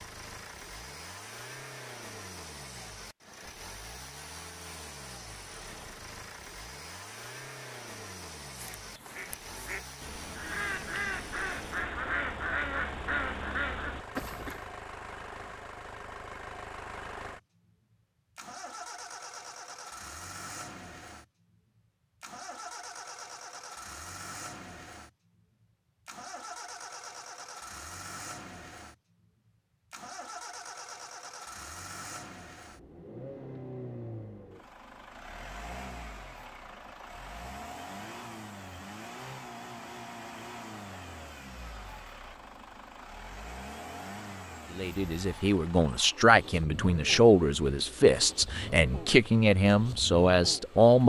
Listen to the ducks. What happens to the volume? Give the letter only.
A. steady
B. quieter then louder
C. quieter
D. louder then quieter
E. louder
E.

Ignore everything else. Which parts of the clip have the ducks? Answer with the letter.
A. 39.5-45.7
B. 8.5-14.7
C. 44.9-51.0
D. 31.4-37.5
B.